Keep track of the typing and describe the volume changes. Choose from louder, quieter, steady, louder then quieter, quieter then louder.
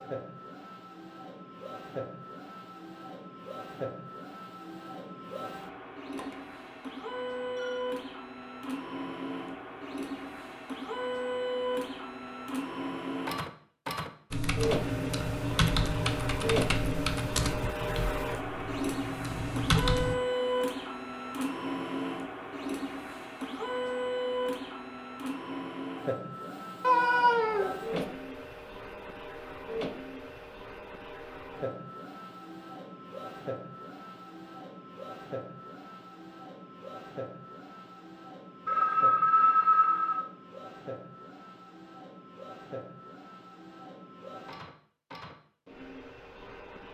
quieter then louder.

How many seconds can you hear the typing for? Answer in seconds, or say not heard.
6 s.